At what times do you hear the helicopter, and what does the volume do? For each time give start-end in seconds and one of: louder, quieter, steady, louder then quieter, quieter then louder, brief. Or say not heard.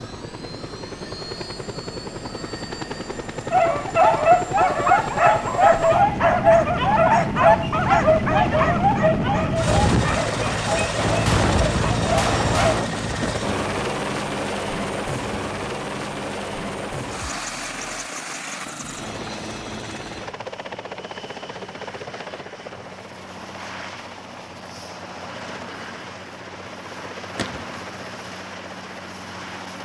0.0-29.8 louder then quieter.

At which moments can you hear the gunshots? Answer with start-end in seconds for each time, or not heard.
10.9-12.9, 27.4-27.8.